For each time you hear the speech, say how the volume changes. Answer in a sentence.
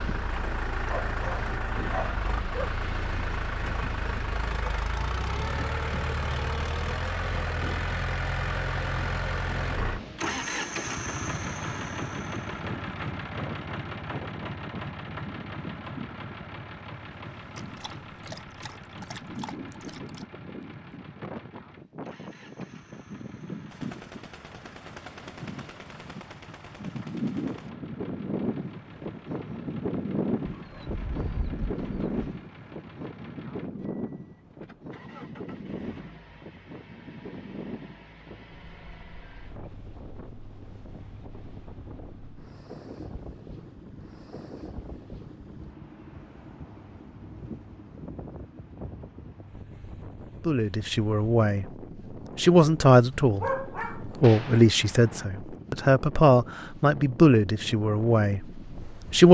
The speech can be heard briefly from 50.5 to 51.7 s; and from 52.4 to 59.2 s, getting quieter.